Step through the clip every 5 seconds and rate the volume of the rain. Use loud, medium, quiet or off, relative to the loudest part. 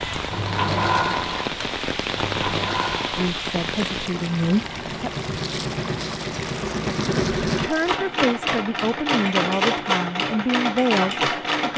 loud, medium, off.